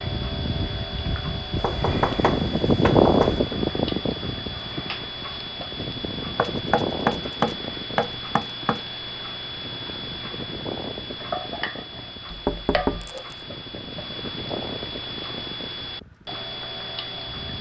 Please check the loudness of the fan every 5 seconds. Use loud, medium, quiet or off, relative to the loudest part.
loud, medium, quiet, quiet.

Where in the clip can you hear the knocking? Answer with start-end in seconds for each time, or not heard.
1.6-3.4, 6.3-8.8, 12.3-13.3.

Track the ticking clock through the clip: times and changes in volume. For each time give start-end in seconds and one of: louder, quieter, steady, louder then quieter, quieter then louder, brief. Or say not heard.
0.0-17.5 steady.